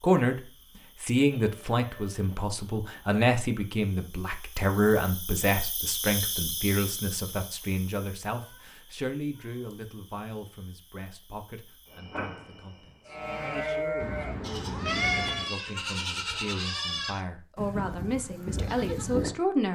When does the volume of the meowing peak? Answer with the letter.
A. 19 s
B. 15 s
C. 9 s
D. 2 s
B.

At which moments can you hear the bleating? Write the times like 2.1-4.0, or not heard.
13.1-19.4.